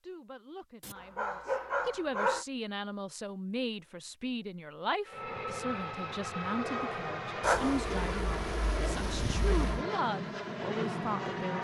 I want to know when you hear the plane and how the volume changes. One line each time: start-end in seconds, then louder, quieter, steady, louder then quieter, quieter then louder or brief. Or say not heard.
5.0-11.5 steady.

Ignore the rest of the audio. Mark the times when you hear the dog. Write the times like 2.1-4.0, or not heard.
0.8-2.5, 7.4-9.8.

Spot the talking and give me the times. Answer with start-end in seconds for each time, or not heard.
0.0-11.5.